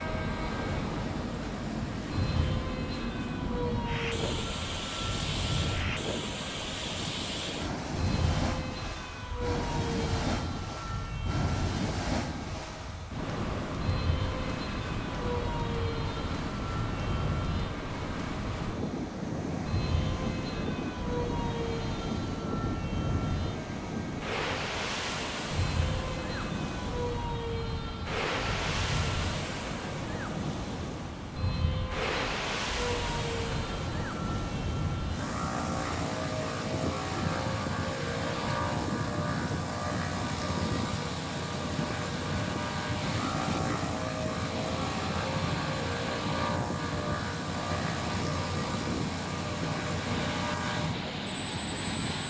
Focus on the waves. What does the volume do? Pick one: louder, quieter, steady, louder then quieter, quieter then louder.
steady.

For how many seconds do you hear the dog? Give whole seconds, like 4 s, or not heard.
not heard.